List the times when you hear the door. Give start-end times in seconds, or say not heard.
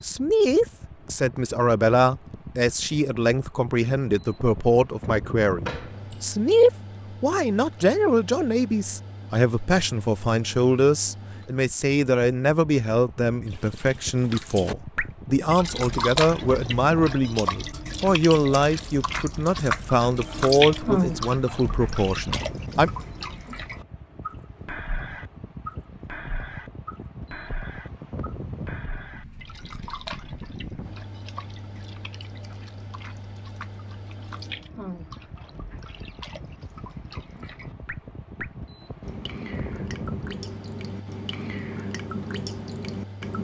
5.6-6.2.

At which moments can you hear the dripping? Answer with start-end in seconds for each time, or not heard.
13.5-43.4.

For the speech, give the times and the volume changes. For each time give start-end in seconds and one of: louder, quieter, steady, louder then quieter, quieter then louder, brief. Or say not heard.
0.0-22.9 steady.